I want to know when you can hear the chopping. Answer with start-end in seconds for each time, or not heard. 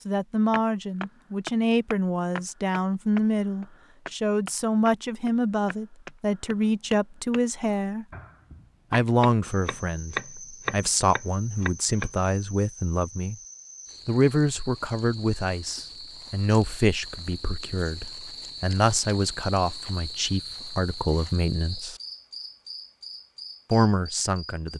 0.5-12.1.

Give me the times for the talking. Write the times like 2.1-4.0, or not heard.
0.1-8.1, 8.9-13.3, 14.1-22.0, 23.7-24.7.